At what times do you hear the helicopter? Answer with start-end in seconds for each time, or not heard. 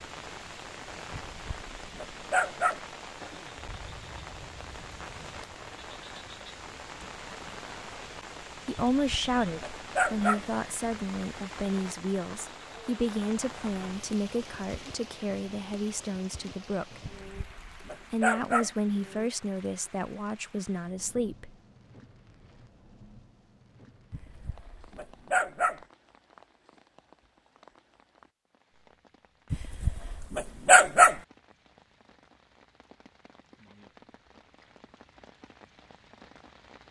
not heard.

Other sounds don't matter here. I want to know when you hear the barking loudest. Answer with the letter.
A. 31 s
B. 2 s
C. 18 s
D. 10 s
A.